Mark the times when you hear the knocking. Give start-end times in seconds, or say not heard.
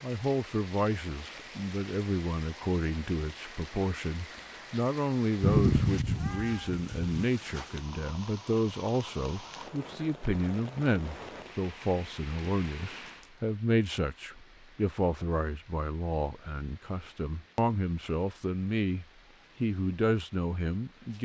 not heard.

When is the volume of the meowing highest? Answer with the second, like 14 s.
6 s.